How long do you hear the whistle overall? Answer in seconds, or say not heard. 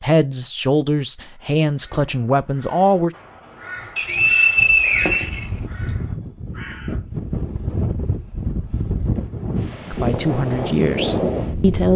2 s.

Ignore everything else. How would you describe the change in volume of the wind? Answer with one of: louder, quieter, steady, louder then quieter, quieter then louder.
louder.